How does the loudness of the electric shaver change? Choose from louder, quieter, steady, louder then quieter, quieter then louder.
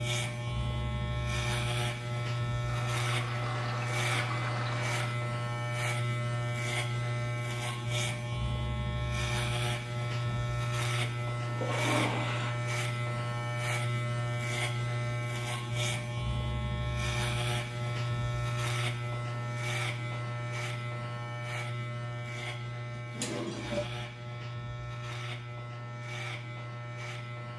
quieter.